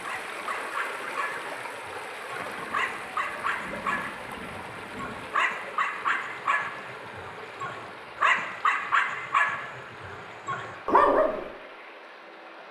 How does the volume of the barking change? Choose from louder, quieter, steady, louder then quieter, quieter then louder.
louder.